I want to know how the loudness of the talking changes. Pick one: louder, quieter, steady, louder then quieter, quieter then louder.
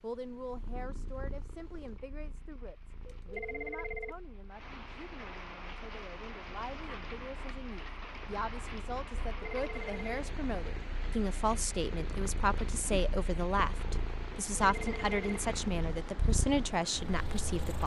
louder.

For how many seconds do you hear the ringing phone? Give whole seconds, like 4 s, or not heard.
3 s.